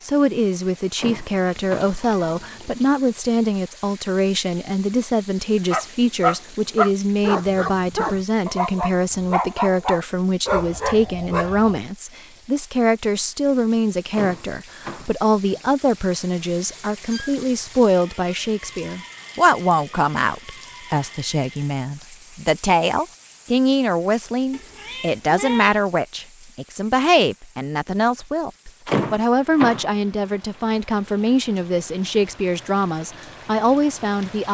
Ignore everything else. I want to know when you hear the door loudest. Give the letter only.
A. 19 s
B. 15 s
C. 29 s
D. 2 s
C.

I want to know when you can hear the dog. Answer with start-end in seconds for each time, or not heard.
5.7-11.8.